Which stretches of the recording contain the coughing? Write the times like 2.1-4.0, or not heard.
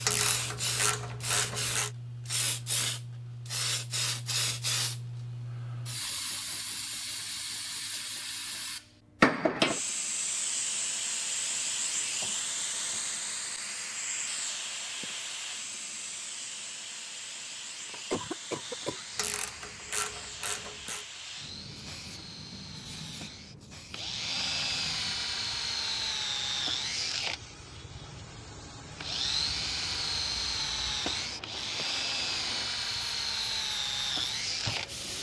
12.2-13.2, 17.9-19.1.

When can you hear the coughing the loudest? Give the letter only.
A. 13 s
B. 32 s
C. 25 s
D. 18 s
D.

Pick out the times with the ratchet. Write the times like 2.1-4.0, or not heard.
0.1-1.9, 19.1-21.1.